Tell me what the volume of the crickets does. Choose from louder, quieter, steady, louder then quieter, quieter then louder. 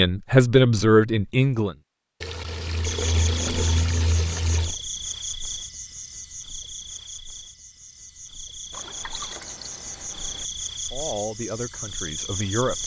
quieter then louder.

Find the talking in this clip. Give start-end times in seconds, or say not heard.
0.0-1.8, 10.9-12.8.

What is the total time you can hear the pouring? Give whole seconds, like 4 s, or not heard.
4 s.